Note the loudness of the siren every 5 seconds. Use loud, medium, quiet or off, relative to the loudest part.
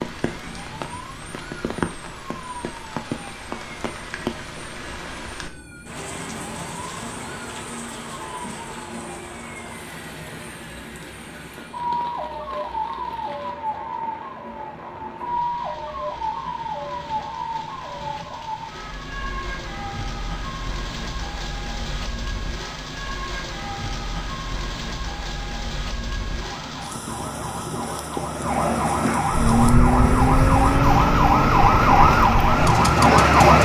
quiet, quiet, quiet, quiet, quiet, medium, loud.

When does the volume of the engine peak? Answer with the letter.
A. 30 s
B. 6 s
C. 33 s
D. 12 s
A.